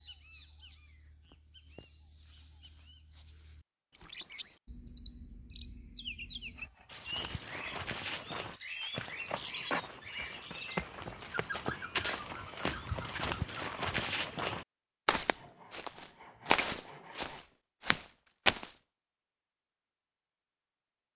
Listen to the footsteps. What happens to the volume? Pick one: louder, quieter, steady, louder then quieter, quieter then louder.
louder.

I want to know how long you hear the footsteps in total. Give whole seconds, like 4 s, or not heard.
12 s.